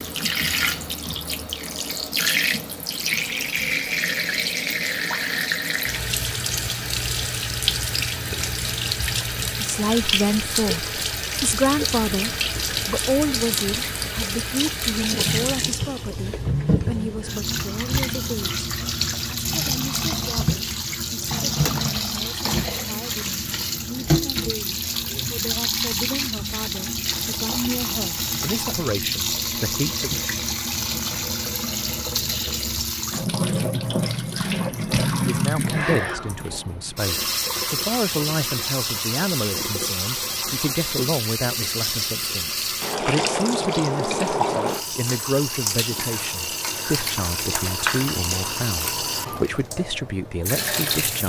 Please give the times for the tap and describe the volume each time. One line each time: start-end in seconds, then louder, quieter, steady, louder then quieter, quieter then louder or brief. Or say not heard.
0.0-51.2 steady.